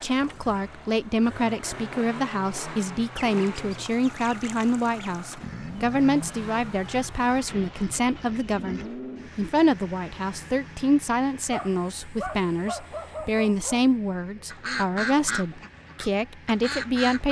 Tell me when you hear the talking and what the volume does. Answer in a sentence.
The talking can be heard from 0.0 to 17.2 s, at a steady volume.